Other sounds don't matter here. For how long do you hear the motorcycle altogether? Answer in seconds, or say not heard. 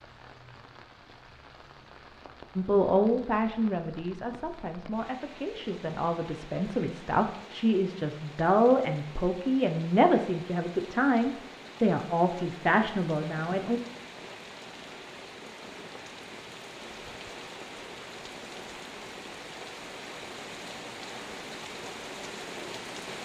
not heard.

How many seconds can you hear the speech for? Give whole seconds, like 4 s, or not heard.
11 s.